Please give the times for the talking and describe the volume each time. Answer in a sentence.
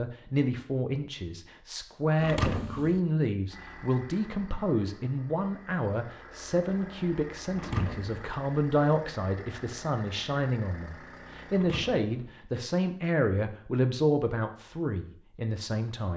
You can hear the talking from 0.0 to 16.1 s, at a steady volume.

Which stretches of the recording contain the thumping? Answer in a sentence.
The thumping can be heard from 2.2 to 3.0 s, from 7.5 to 8.3 s and from 11.5 to 12.3 s.